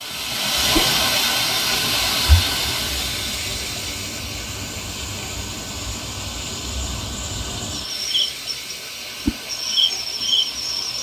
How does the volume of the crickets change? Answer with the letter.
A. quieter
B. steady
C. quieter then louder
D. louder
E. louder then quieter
D.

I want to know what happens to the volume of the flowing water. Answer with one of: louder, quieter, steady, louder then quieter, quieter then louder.
quieter.